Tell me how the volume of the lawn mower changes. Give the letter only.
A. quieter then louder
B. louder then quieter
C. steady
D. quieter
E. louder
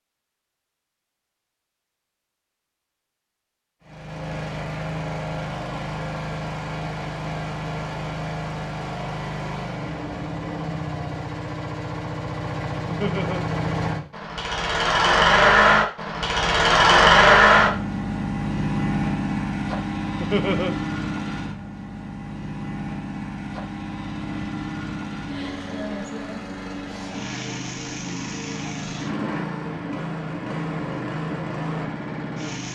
B.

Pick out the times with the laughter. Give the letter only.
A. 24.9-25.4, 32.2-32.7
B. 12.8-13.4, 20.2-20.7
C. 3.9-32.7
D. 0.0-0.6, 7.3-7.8
B.